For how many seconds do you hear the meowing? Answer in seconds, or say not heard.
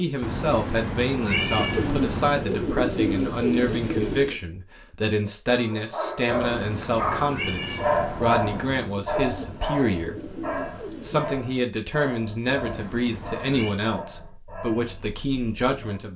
6 s.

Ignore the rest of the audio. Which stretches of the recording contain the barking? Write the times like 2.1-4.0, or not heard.
5.5-16.0.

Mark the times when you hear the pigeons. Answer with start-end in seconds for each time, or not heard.
1.6-4.4, 8.9-11.3.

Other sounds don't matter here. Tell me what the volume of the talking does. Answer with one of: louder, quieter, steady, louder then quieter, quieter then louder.
steady.